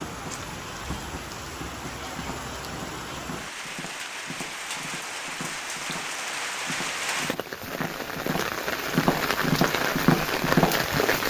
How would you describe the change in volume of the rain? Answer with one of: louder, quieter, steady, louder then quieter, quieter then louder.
louder.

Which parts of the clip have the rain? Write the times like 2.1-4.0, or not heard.
0.0-11.2.